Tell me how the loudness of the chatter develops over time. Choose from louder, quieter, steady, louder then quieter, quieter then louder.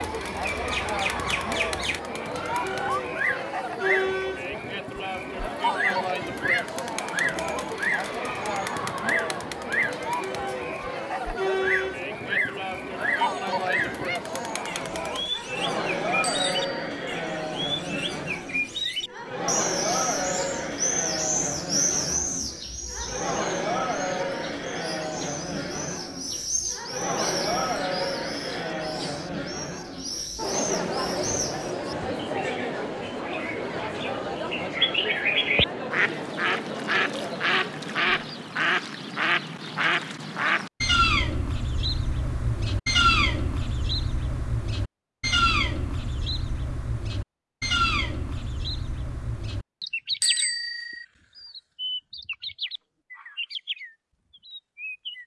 steady.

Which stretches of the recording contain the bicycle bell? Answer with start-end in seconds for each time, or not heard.
16.2-16.9, 50.2-51.0.